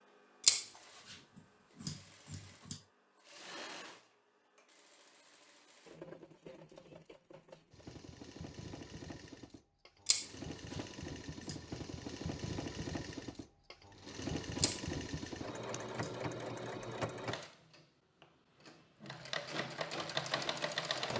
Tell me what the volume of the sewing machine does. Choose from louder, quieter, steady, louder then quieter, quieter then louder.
louder.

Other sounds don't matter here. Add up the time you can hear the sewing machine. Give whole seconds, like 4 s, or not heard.
21 s.